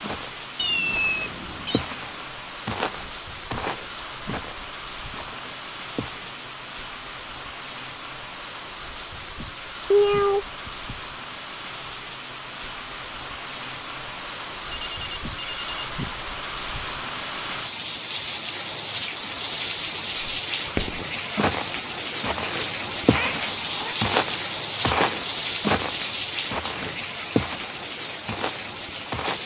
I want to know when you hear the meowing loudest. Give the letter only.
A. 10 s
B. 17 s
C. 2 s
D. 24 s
A.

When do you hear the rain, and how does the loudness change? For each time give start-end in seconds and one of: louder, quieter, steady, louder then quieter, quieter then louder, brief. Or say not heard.
0.0-29.4 louder.